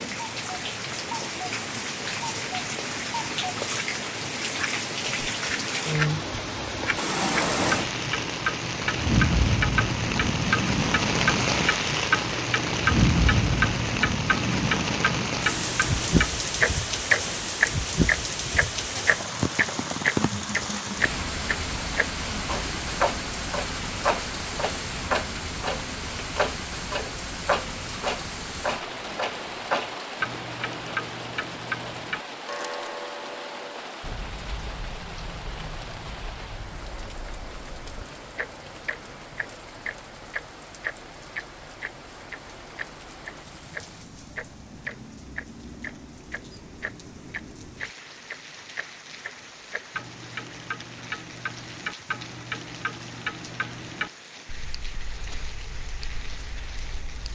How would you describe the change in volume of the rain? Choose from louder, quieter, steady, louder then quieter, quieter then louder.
quieter.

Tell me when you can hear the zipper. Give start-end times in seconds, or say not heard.
not heard.